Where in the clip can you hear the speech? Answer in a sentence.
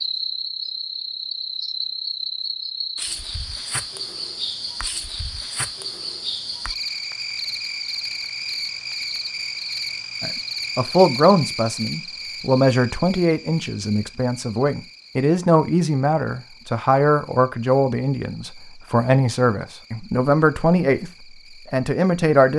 The speech can be heard from 10.2 to 22.5 s.